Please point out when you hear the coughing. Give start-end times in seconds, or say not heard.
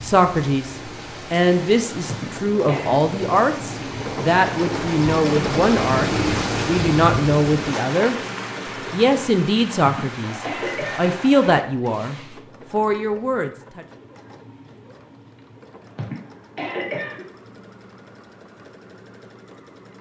2.0-3.0, 9.8-11.2, 15.9-17.2.